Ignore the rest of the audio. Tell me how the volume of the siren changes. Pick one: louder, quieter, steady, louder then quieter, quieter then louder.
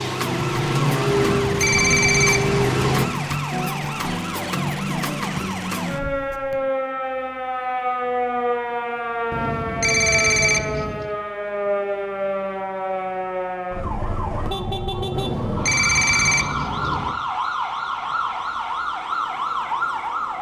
steady.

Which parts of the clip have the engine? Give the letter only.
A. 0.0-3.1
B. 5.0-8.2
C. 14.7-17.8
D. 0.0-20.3
A.